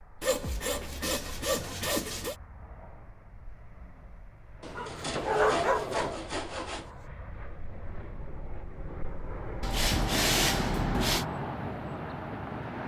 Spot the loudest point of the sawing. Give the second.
10 s.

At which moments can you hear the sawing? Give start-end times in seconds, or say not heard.
0.2-2.4, 4.6-6.9, 9.6-11.2.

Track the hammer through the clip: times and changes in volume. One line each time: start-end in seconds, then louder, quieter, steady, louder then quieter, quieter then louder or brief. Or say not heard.
not heard.